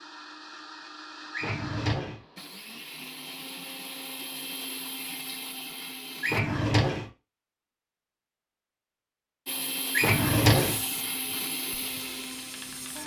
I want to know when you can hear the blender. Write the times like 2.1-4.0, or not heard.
0.0-6.4, 9.4-13.0.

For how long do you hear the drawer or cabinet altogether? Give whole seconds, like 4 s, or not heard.
3 s.